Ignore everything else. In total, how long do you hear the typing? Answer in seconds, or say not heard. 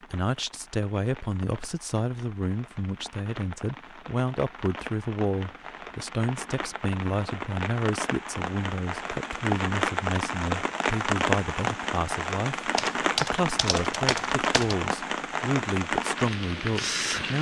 2 s.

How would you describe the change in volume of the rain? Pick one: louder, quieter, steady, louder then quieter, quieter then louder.
louder.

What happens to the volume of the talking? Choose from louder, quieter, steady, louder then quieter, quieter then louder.
steady.